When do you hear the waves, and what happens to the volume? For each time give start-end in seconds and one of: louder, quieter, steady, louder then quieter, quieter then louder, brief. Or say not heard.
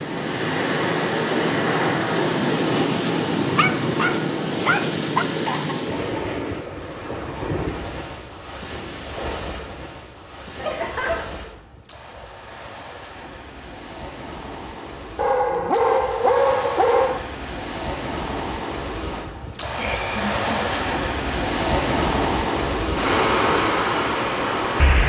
0.0-25.0 quieter then louder.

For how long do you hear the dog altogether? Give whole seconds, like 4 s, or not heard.
4 s.